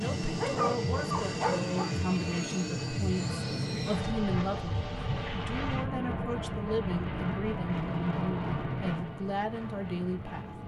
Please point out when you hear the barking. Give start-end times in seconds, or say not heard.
0.4-1.9.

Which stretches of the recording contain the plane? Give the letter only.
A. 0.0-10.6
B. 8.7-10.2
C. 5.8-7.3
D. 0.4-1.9
A.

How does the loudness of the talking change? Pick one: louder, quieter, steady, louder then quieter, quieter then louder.
steady.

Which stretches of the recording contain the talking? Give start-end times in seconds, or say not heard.
0.0-10.4.